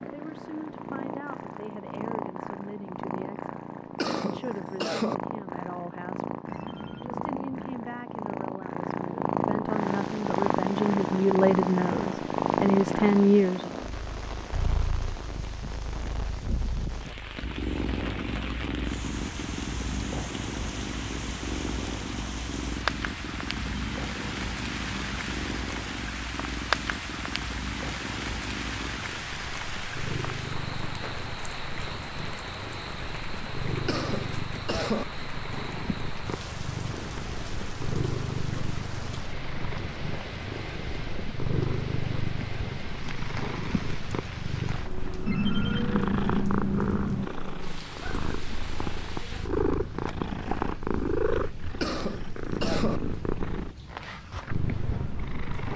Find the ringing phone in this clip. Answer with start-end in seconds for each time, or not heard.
6.5-7.8, 23.6-25.6, 45.2-47.2.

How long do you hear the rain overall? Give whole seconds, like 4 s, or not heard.
46 s.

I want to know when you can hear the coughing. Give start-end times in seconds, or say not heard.
4.0-5.2, 33.9-35.0, 51.8-53.0.